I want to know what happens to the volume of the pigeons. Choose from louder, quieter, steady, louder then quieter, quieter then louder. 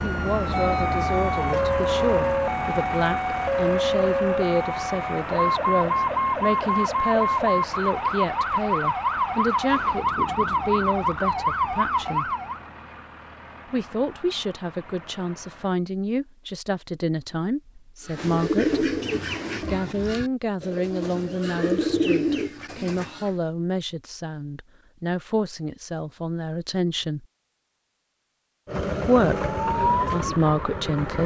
quieter then louder.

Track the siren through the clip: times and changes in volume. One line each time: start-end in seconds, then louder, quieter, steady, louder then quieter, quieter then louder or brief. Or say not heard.
0.0-12.6 steady
29.4-31.2 brief.